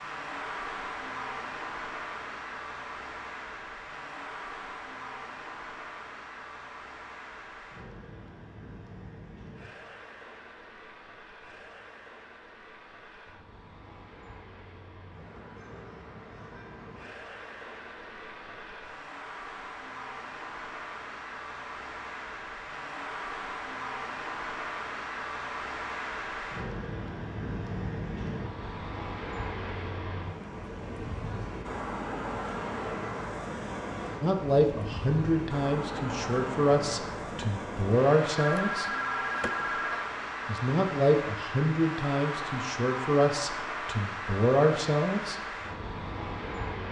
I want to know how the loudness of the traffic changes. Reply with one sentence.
The loudness of the traffic goes down, then up.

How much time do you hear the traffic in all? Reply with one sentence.
The traffic can be heard for 47 seconds in total.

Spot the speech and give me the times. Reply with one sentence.
The speech can be heard from 34.2 to 38.9 s and from 40.5 to 45.4 s.